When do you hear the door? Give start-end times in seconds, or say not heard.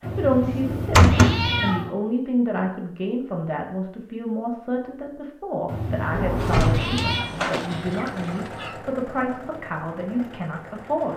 0.4-1.5, 6.1-7.5.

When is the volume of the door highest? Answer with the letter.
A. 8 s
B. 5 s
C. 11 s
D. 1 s
D.